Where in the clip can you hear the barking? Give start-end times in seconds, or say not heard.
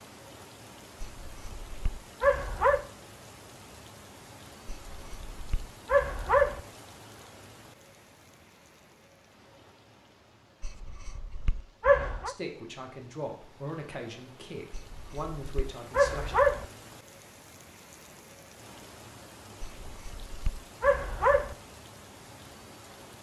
1.0-2.9, 4.7-6.6, 10.6-12.3, 14.7-16.6, 19.6-21.6.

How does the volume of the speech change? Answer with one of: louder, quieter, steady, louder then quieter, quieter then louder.
steady.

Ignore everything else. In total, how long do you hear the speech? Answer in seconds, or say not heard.
4 s.